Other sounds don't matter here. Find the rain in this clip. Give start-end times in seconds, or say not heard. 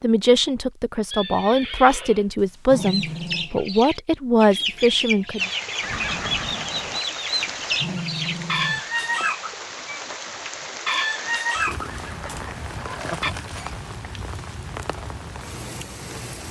5.3-16.4.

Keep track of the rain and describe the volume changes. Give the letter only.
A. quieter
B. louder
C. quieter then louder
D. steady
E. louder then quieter
D.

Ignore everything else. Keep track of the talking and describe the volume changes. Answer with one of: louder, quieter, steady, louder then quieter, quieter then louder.
louder.